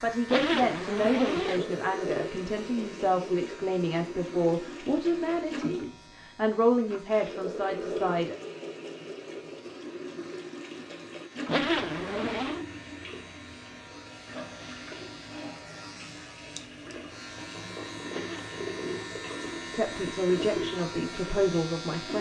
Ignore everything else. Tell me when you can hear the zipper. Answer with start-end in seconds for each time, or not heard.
0.2-1.6, 11.4-12.7, 18.1-19.1.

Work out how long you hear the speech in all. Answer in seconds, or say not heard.
11 s.